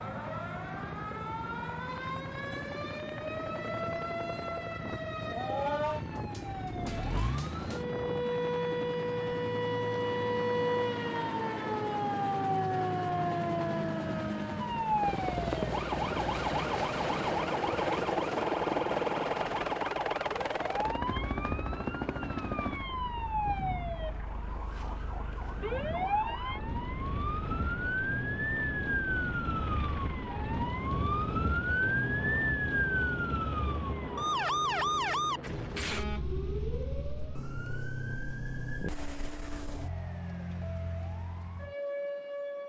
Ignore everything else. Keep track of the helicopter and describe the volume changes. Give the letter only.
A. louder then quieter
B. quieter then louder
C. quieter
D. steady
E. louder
A.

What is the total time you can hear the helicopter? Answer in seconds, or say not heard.
36 s.